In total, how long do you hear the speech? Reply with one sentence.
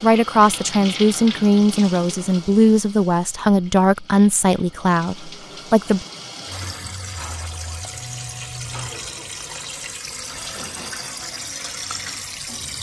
You can hear the speech for 6 seconds altogether.